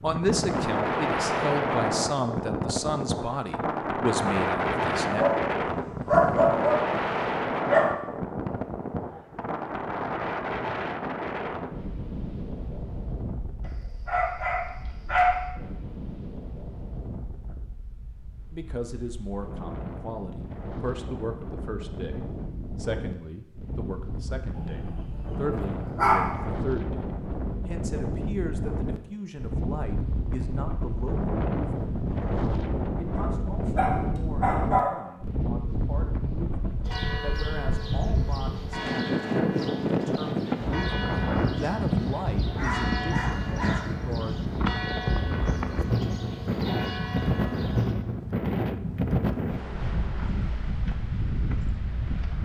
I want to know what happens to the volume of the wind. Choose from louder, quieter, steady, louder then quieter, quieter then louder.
quieter then louder.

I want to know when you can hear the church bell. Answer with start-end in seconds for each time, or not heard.
36.9-48.0.